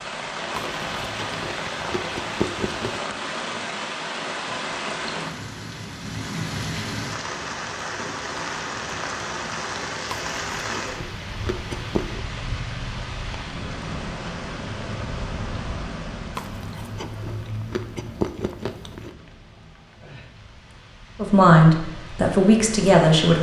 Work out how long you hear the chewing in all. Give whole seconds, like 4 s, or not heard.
7 s.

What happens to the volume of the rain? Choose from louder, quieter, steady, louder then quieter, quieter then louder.
quieter.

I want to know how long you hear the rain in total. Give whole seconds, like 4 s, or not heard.
23 s.